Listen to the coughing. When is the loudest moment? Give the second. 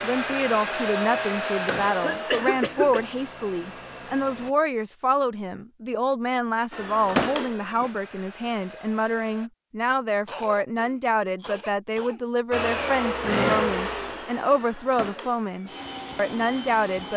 2 s.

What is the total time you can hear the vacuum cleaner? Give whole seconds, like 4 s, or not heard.
12 s.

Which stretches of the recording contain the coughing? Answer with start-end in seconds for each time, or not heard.
2.0-3.1, 10.2-12.2.